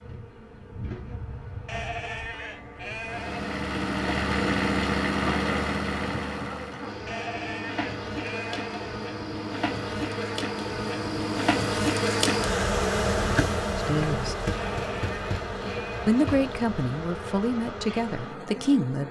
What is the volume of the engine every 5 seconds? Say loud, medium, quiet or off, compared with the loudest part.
loud, loud, off, off.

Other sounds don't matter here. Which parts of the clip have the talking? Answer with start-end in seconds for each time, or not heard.
13.8-14.3, 16.1-19.0.